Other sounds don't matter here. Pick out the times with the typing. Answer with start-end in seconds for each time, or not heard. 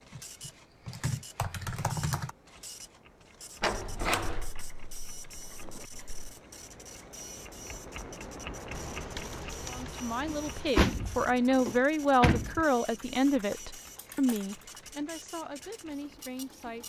0.1-2.3, 4.2-6.2, 8.7-10.7, 12.8-14.8.